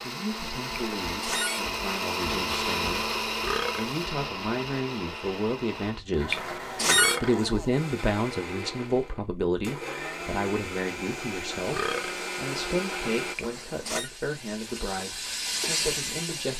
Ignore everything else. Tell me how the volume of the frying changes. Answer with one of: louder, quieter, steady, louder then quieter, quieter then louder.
louder.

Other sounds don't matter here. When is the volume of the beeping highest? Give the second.
7 s.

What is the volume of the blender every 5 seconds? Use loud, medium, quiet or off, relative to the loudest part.
loud, medium, loud, off.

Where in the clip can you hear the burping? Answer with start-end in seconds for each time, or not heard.
3.4-3.9, 6.9-7.4, 11.7-12.2.